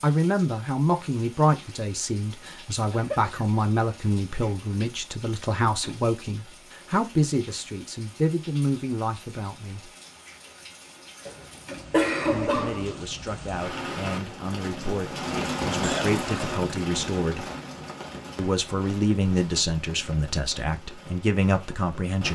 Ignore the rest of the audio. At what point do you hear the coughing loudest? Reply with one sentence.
The loudest moment of the coughing is at 12 seconds.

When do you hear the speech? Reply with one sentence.
The speech can be heard from 0.0 to 9.9 s, from 12.3 to 17.4 s and from 18.4 to 22.3 s.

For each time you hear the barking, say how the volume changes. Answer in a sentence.
The barking can't be heard in this clip.